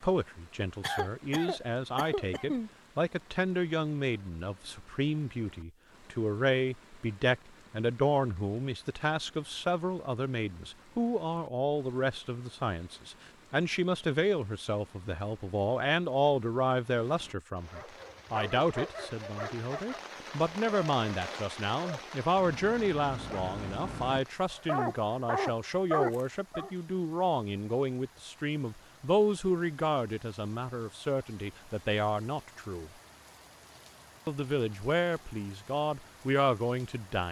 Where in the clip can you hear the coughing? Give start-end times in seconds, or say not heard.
0.8-2.7.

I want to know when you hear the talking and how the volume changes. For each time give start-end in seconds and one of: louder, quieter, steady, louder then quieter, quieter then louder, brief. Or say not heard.
0.0-32.9 steady
34.2-37.2 brief.